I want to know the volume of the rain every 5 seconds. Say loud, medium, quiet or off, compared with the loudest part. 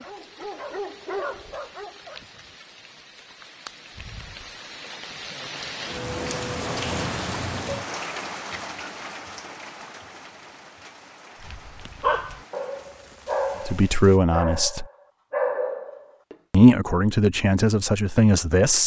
quiet, loud, quiet, off.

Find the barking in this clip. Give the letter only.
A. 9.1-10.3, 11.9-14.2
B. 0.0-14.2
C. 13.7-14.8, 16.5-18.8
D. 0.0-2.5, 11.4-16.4
D.